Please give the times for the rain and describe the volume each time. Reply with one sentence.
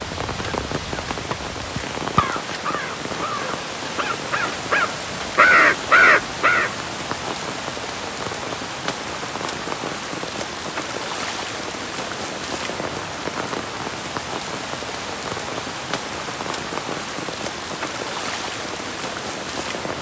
You can hear the rain from 0.0 to 19.9 s, at a steady volume.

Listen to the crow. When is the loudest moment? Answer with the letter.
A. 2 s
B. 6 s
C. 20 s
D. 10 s
B.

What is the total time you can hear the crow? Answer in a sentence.
You can hear the crow for 7 seconds altogether.